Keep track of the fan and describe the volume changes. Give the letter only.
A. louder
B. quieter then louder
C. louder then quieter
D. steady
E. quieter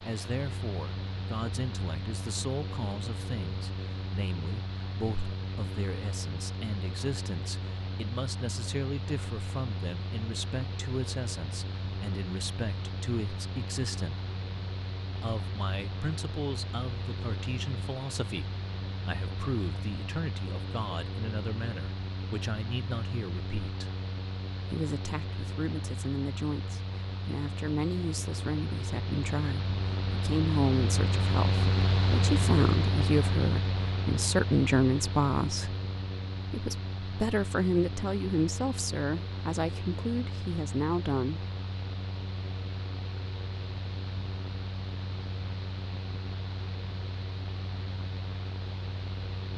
C.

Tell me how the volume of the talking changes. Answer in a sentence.
The loudness of the talking goes up.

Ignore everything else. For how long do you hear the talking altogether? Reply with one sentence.
You can hear the talking for 39 seconds altogether.